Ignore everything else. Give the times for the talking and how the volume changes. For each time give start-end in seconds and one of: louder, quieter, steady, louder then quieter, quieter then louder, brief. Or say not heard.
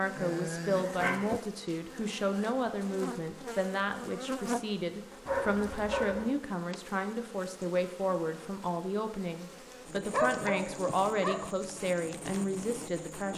0.0-13.3 steady.